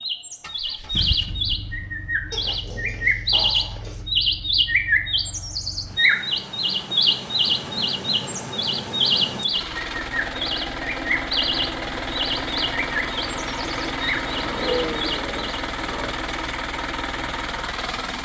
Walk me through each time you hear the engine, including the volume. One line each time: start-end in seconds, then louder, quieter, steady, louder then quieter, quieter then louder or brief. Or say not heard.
0.4-18.1 louder.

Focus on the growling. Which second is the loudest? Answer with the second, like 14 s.
15 s.